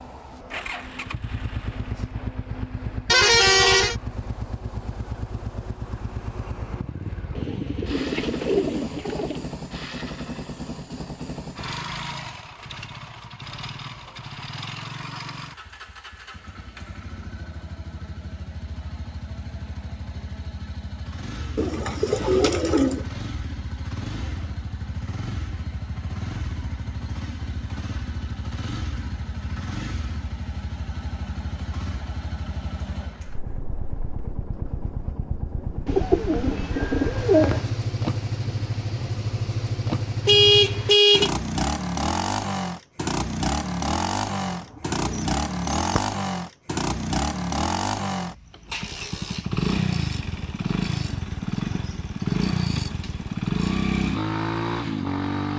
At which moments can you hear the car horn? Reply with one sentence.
The car horn can be heard from 3.0 to 4.0 s and from 40.2 to 41.3 s.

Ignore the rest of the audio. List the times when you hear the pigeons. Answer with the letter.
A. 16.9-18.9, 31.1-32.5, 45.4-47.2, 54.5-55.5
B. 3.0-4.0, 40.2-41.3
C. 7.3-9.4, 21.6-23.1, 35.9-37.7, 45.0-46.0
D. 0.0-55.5
C.